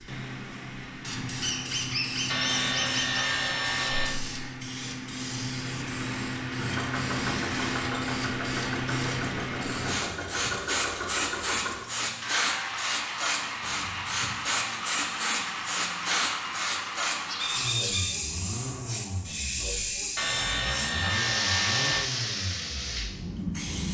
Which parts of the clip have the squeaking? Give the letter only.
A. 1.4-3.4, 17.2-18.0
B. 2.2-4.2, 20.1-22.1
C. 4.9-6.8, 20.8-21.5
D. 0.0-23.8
A.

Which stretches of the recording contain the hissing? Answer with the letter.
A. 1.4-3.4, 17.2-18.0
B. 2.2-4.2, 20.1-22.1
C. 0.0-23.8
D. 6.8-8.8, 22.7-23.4
C.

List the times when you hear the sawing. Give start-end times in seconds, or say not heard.
2.2-4.2, 20.1-22.1.